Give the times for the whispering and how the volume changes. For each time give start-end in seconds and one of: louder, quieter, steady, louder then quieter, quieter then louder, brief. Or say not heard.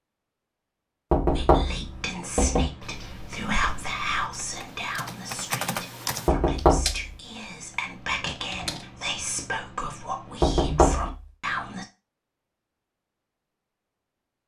1.2-11.8 quieter then louder.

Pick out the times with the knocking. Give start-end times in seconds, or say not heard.
1.1-2.7, 6.2-7.0, 10.4-11.2.